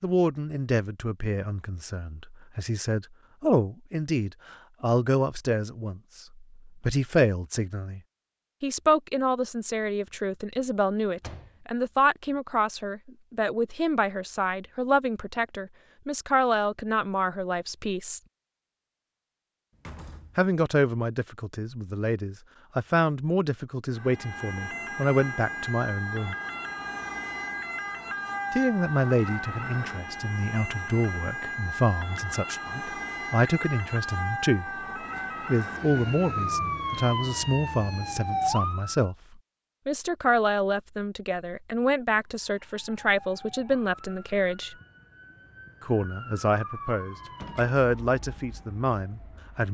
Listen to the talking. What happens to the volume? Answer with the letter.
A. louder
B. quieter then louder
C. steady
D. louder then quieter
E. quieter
C.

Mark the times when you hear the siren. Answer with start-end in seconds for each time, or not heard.
23.9-39.1, 42.5-49.6.